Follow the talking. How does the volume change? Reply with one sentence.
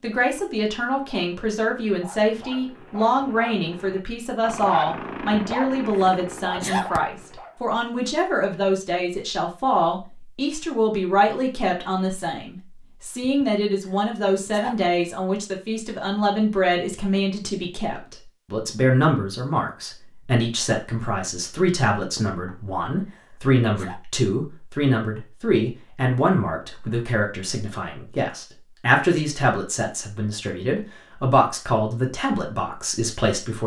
The loudness of the talking stays about the same.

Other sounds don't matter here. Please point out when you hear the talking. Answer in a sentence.
You can hear the talking from 0.0 to 33.6 s.